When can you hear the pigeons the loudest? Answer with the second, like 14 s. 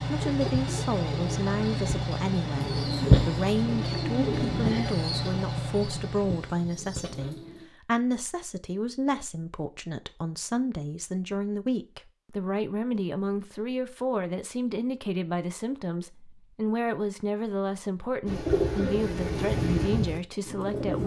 3 s.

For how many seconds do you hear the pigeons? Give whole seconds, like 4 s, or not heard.
10 s.